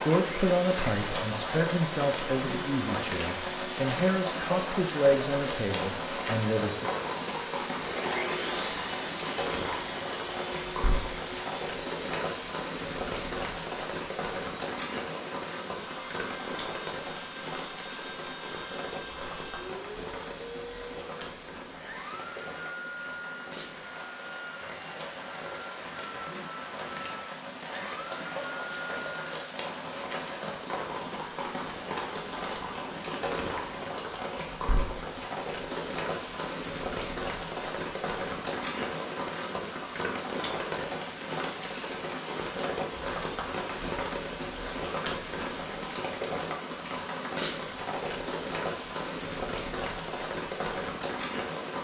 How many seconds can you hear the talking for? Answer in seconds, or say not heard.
7 s.